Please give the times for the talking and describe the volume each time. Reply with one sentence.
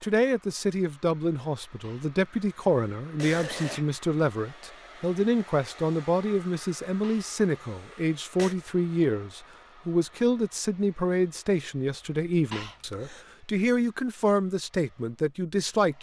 You can hear the talking from 0.0 to 15.9 s, at a steady volume.